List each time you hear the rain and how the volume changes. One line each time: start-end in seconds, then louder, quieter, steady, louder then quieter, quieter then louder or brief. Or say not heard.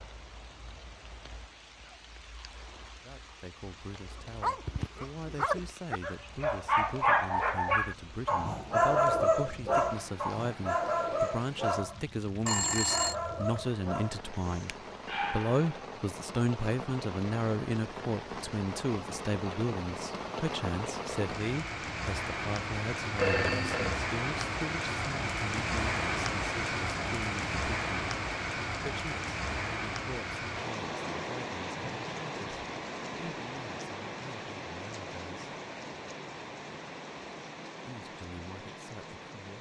0.0-39.5 louder then quieter.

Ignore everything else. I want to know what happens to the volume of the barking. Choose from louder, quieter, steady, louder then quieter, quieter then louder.
louder then quieter.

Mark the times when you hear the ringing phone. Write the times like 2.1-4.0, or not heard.
12.4-13.2, 23.1-24.0.